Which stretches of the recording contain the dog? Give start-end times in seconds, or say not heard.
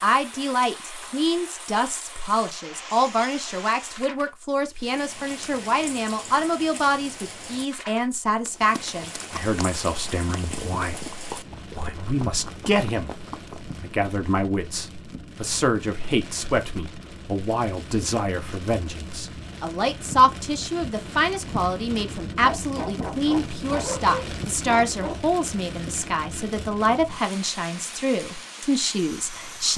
22.4-25.1.